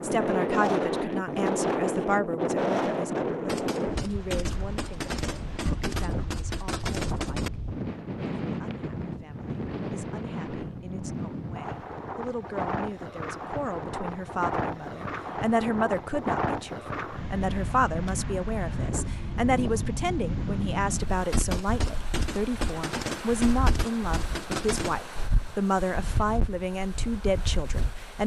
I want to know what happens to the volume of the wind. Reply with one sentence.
The loudness of the wind goes down.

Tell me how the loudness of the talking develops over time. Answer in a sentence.
The volume of the talking goes down, then up.